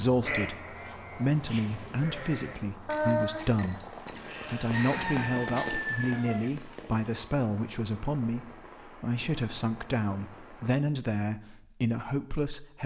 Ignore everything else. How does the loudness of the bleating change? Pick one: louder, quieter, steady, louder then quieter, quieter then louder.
louder then quieter.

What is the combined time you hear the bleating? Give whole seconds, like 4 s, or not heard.
5 s.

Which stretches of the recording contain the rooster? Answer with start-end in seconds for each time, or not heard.
4.7-6.5.